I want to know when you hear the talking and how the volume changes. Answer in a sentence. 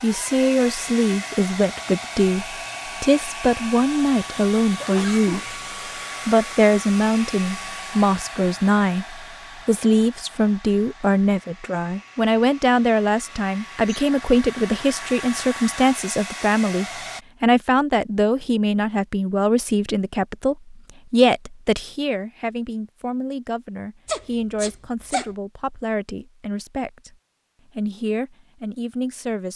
The talking can be heard from 0.0 to 5.5 s, at a steady volume; from 6.2 to 27.1 s, getting quieter; and briefly from 27.8 to 29.5 s.